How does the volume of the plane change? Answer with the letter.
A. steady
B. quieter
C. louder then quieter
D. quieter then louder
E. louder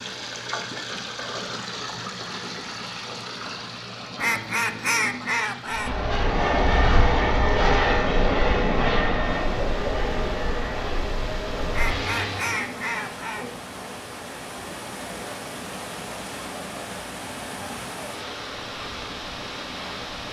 B.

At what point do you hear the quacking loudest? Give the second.
5 s.